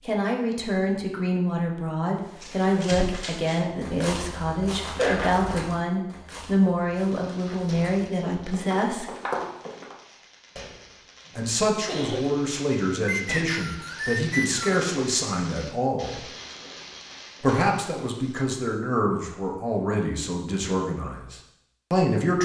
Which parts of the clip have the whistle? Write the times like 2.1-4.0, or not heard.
13.1-14.7.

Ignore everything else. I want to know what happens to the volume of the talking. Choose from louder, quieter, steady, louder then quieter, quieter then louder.
steady.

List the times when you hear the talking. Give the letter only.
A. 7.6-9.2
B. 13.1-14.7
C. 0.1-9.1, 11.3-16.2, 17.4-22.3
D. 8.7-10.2
C.